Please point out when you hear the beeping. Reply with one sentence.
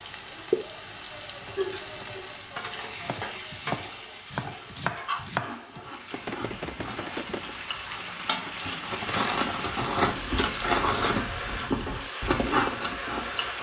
The beeping can't be heard in this clip.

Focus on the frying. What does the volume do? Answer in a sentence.
The volume of the frying goes down, then up.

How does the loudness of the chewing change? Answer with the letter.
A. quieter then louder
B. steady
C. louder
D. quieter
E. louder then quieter
A.